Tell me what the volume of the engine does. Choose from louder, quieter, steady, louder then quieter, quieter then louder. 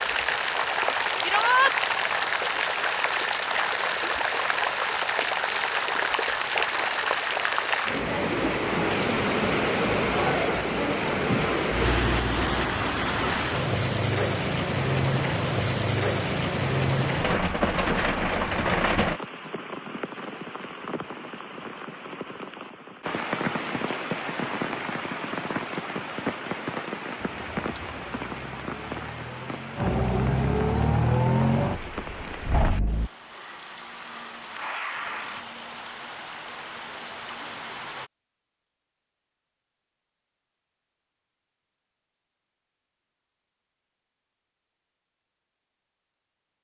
louder then quieter.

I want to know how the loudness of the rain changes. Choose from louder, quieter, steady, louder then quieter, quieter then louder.
quieter.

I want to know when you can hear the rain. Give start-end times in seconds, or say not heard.
0.0-38.1.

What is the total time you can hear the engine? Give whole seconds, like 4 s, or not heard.
6 s.